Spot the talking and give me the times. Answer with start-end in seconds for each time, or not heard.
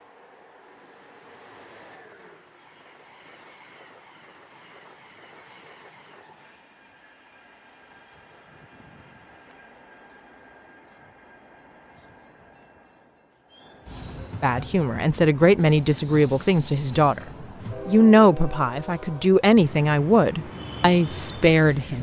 14.4-17.2, 17.9-21.9.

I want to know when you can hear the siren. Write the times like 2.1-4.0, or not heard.
not heard.